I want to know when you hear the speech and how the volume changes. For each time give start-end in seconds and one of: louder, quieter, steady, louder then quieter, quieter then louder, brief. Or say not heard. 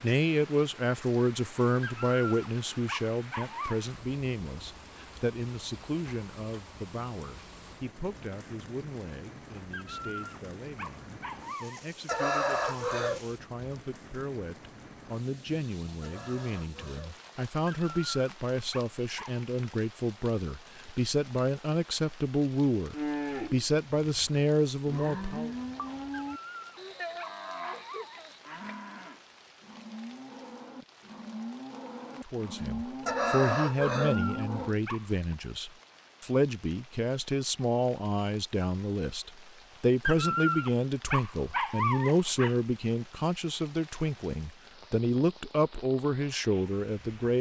0.0-25.5 quieter then louder
32.2-47.3 steady.